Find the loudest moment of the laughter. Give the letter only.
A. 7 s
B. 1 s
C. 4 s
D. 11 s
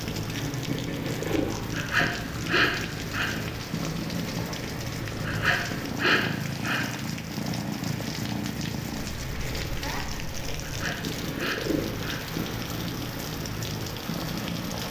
B.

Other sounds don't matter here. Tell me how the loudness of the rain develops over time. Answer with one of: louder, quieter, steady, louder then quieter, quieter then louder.
steady.